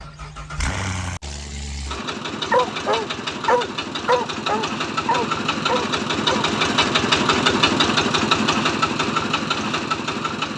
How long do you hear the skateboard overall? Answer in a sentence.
The skateboard can't be heard in this clip.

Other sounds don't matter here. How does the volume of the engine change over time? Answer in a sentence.
The loudness of the engine goes up.